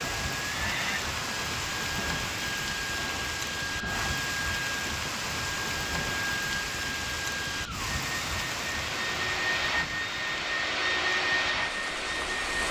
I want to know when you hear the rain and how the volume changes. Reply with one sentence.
You can hear the rain from 0.0 to 12.6 s, getting quieter.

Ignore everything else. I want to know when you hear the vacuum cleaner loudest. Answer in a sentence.
The volume of the vacuum cleaner peaks at 11 seconds.